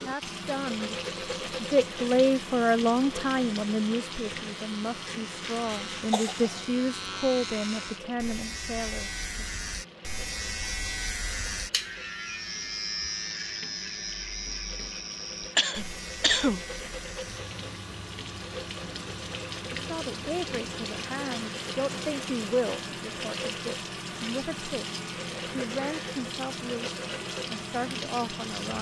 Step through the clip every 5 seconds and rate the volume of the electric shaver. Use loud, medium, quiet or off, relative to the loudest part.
medium, loud, loud, medium, medium, medium.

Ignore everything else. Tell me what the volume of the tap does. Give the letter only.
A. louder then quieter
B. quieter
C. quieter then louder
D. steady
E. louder
C.